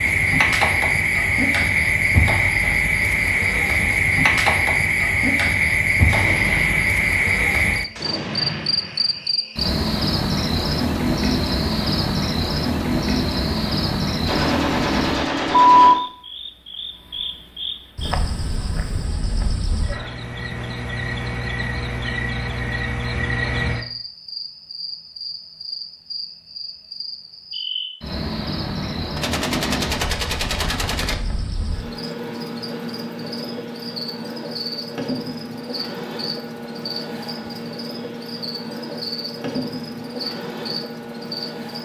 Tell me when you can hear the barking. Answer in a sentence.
The barking can't be heard in this clip.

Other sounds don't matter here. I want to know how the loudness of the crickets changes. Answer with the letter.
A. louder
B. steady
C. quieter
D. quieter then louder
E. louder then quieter
C.